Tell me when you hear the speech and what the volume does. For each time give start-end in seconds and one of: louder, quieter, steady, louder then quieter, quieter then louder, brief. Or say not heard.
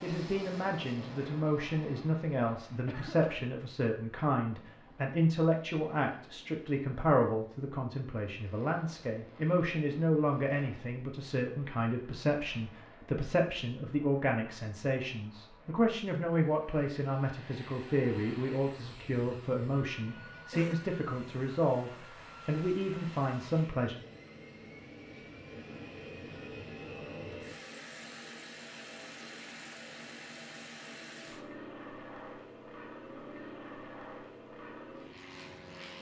0.0-23.9 steady.